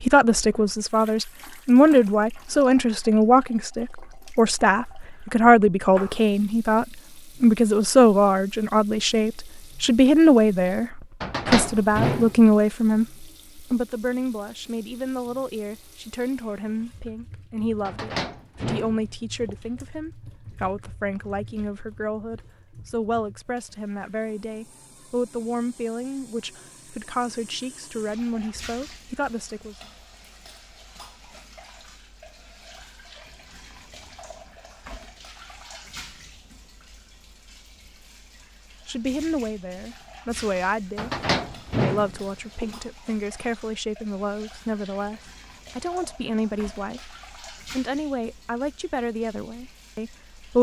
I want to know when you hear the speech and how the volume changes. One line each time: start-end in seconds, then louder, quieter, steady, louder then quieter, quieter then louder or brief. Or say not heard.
0.0-29.8 quieter
38.9-50.5 steady.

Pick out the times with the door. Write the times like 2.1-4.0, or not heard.
11.2-12.4, 17.9-19.6, 41.0-42.6.